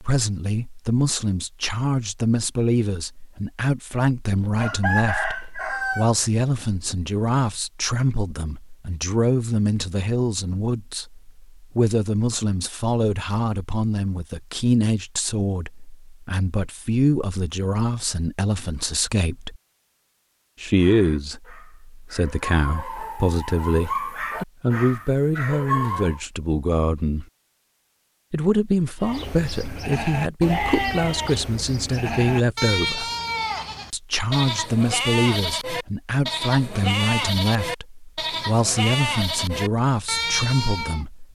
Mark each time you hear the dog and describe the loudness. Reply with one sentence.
The dog can be heard from 20.8 to 26.2 s, getting louder.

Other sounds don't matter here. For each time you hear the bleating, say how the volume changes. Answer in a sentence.
You can hear the bleating from 29.0 to 41.0 s, at a steady volume.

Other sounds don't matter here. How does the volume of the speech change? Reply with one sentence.
The loudness of the speech stays about the same.